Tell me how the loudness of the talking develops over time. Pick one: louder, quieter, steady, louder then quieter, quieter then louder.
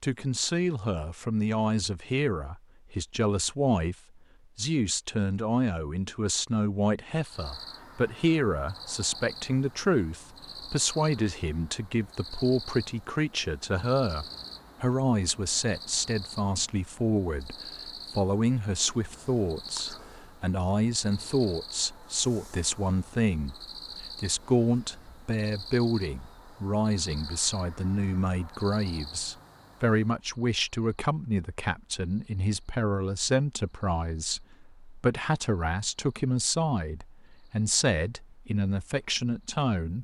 steady.